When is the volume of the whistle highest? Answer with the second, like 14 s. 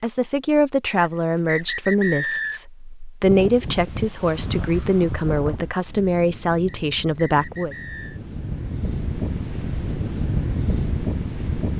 2 s.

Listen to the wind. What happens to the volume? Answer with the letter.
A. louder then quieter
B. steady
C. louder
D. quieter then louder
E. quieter
D.